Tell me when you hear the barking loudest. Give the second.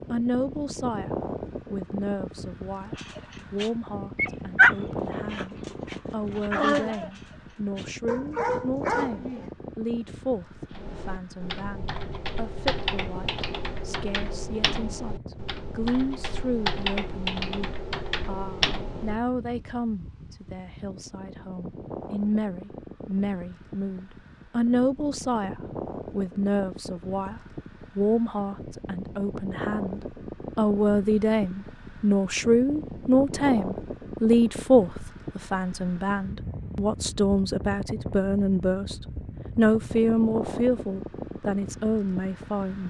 5 s.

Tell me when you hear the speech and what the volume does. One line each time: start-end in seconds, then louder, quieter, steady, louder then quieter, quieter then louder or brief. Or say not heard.
0.1-42.8 louder.